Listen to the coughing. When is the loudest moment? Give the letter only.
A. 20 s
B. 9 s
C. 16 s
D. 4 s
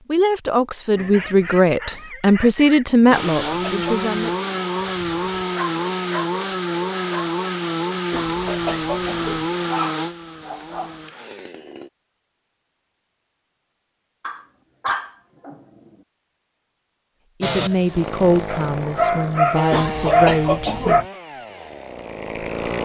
A.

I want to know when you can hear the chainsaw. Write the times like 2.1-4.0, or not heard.
3.1-11.9, 17.4-22.8.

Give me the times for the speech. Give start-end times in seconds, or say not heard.
0.1-4.3, 17.4-21.1.